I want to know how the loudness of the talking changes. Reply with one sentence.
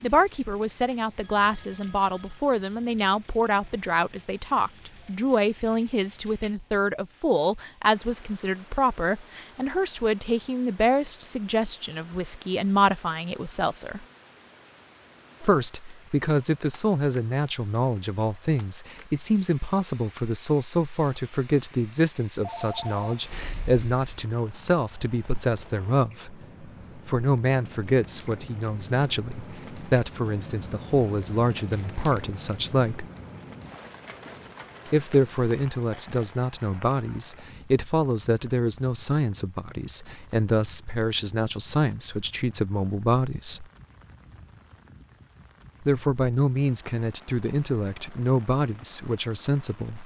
The volume of the talking stays about the same.